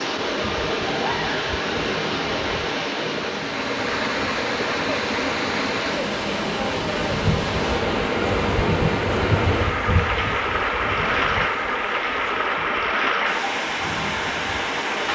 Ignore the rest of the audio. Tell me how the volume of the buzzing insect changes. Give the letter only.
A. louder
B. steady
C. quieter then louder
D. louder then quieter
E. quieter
E.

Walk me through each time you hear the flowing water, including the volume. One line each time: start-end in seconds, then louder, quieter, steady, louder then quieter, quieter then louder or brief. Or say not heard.
0.0-15.1 steady.